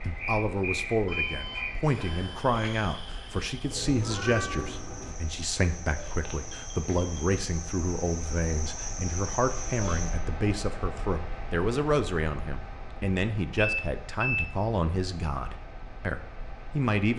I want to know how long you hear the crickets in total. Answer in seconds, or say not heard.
10 s.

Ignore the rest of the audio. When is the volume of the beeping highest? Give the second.
14 s.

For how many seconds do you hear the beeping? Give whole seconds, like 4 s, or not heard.
3 s.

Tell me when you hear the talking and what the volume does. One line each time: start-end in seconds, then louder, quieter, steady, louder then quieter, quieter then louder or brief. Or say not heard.
0.0-17.1 steady.